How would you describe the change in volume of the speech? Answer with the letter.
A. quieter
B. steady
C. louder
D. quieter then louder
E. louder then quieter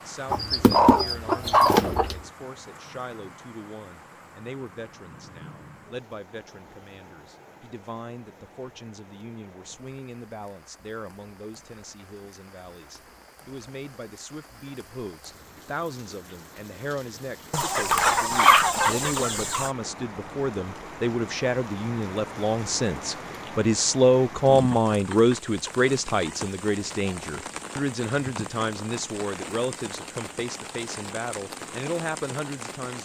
E.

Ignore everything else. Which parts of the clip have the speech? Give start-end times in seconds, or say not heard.
0.1-33.0.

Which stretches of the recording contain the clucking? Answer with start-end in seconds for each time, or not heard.
0.3-2.2, 17.5-19.7.